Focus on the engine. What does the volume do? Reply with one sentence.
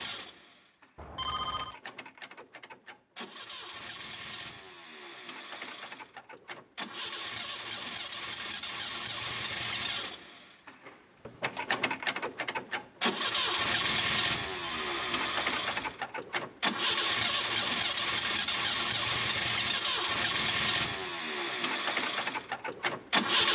The loudness of the engine goes up.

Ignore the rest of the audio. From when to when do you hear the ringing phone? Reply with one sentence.
You can hear the ringing phone from 0.9 to 1.8 s and from 14.6 to 15.9 s.